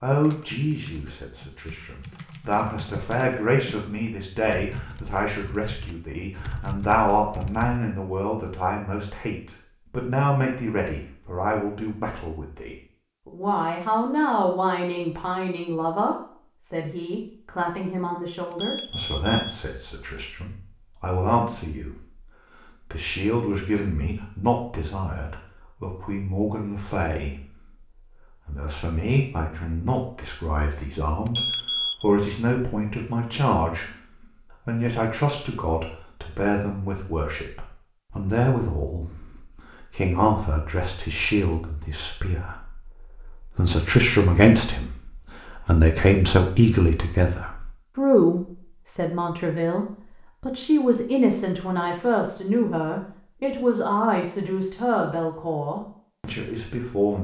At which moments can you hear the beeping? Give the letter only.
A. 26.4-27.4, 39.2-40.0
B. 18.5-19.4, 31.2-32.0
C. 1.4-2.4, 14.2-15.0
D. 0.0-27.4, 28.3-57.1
B.